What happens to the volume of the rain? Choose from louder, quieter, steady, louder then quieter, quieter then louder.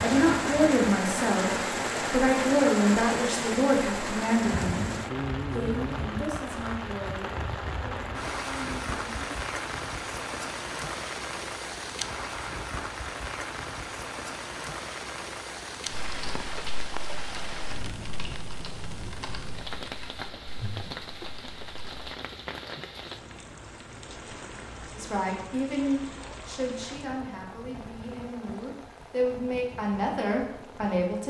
quieter.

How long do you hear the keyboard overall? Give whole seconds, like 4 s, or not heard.
6 s.